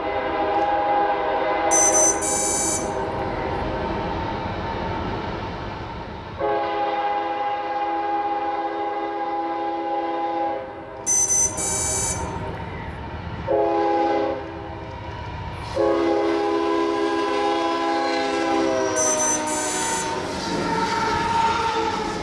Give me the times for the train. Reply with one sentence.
You can hear the train from 0.0 to 22.1 s.